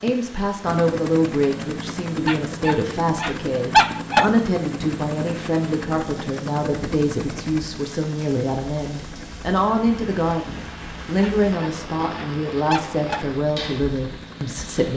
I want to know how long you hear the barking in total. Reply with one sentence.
You can hear the barking for 4 seconds altogether.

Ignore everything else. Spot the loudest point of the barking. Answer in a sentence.
The volume of the barking peaks at 4 seconds.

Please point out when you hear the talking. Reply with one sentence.
The talking can be heard from 0.0 to 14.9 s.